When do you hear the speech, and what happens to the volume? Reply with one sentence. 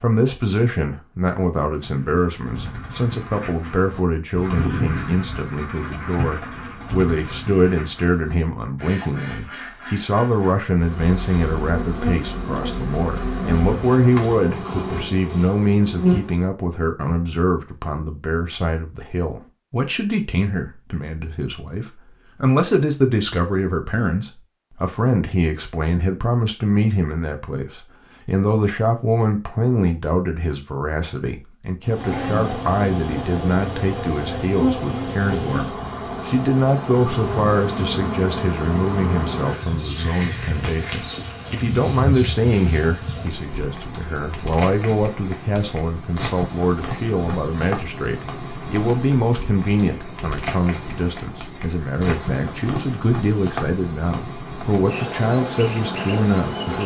The speech can be heard from 0.0 to 56.8 s, at a steady volume.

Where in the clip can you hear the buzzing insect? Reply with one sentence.
The buzzing insect can be heard from 10.8 to 16.4 s and from 31.8 to 56.8 s.